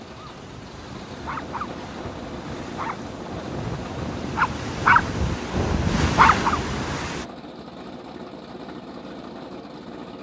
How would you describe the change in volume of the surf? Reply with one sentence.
The loudness of the surf goes up.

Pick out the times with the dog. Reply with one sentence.
The dog can be heard from 0.3 to 6.6 s.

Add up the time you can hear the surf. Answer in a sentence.
You can hear the surf for 7 seconds altogether.